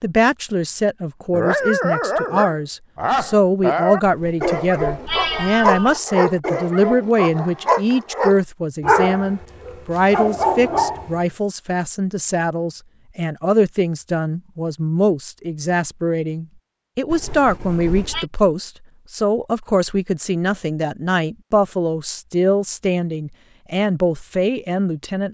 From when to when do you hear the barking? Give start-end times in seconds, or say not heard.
1.3-11.2.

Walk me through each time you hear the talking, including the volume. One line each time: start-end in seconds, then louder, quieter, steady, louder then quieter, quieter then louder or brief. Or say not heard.
0.0-25.3 steady.